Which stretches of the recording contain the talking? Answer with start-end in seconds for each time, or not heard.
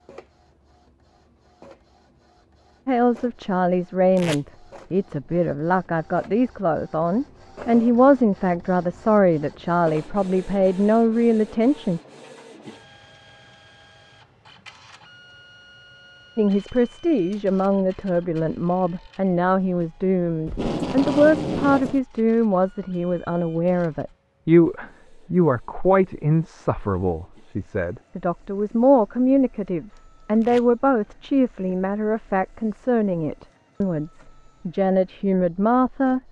2.9-12.0, 16.4-36.2.